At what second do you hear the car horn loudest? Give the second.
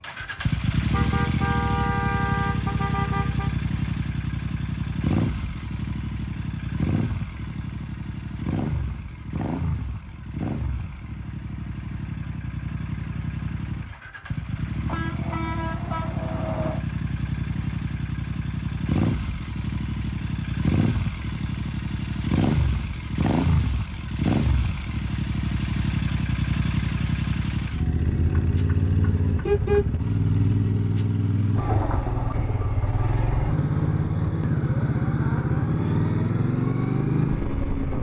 30 s.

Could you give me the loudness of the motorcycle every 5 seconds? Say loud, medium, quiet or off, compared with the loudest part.
loud, medium, medium, medium, loud, loud, loud, loud.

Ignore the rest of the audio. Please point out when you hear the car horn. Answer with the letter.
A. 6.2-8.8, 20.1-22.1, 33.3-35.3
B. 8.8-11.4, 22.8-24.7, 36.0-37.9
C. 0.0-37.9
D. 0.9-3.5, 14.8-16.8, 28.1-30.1
D.